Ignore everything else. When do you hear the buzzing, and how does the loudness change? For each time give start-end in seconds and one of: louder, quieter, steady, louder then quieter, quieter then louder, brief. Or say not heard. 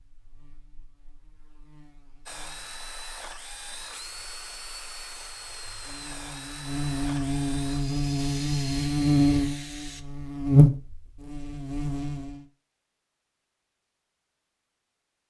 0.0-12.4 quieter then louder.